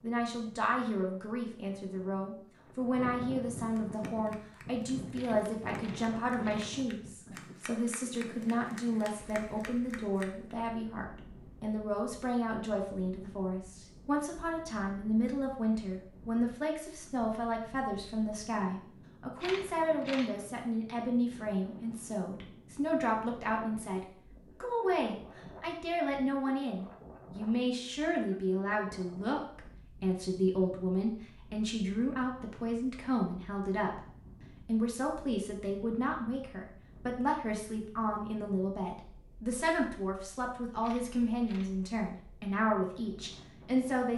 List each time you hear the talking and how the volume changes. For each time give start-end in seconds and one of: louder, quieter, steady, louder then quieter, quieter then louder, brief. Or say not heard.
0.0-34.0 steady
34.6-44.1 steady.